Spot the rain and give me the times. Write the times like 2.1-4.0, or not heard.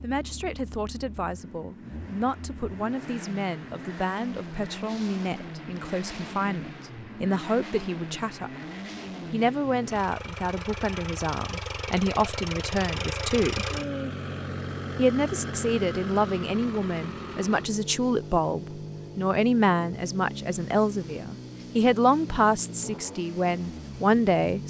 not heard.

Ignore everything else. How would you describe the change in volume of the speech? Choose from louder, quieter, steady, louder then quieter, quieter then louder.
louder.